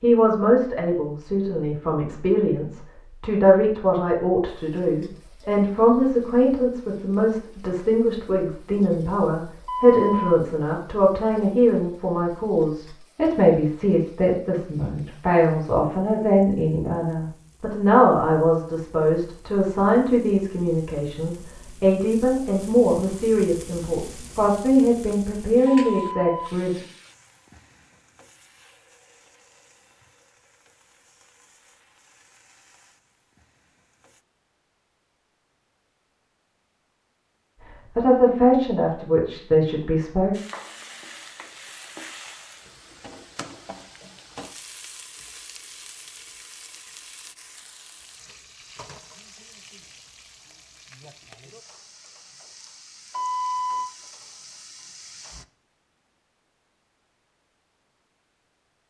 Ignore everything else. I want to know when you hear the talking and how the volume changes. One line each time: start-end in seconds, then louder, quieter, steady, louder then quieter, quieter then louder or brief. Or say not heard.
0.0-26.8 steady
38.0-40.4 brief.